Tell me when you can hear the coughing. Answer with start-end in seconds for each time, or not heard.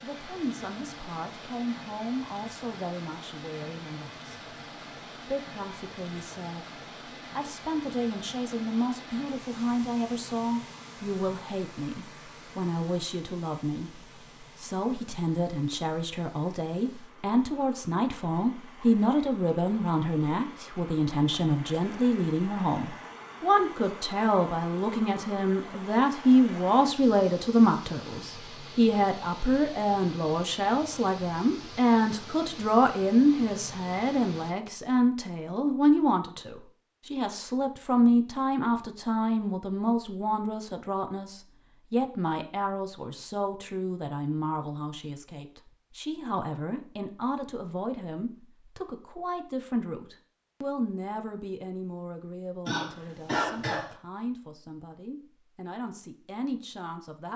52.6-54.0.